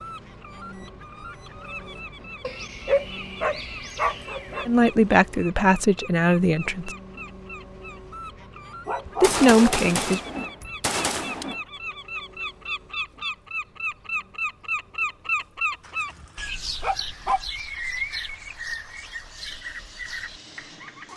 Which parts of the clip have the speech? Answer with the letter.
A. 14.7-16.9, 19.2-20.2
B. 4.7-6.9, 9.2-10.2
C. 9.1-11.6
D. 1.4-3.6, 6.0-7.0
B.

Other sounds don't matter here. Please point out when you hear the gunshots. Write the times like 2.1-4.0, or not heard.
9.1-11.6.